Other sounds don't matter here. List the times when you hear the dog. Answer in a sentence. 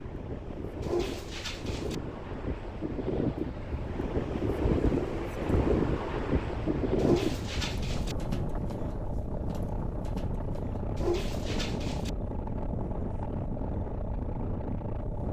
You can hear the dog from 0.8 to 1.9 s, from 7.0 to 8.2 s and from 10.9 to 12.1 s.